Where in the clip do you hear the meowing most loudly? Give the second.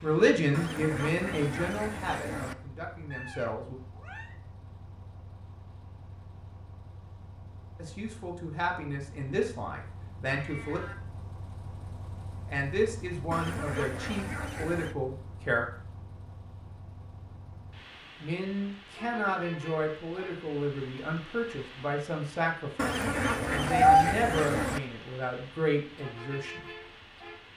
24 s.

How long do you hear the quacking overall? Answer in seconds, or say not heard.
6 s.